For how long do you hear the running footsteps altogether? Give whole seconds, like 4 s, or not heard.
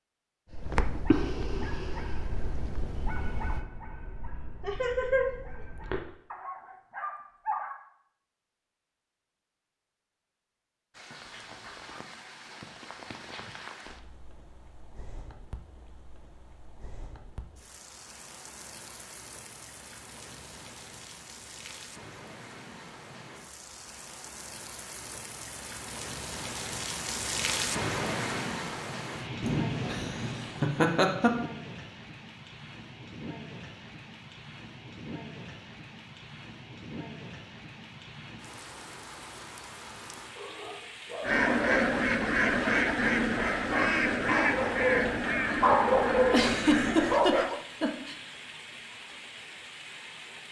not heard.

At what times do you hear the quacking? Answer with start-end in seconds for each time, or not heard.
41.2-47.2.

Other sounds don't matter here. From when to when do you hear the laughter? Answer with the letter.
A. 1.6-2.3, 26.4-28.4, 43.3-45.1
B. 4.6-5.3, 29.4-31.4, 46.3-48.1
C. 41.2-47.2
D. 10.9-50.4
B.